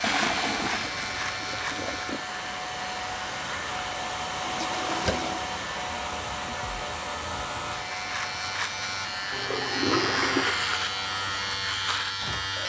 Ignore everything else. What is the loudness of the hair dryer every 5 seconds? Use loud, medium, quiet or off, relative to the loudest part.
loud, loud, medium.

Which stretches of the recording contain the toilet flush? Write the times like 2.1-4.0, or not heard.
0.0-2.2, 4.4-5.5, 9.3-10.6.